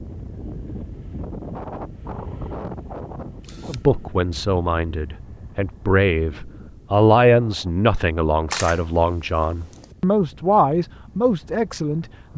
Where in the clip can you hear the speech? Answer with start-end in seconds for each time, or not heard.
3.6-12.3.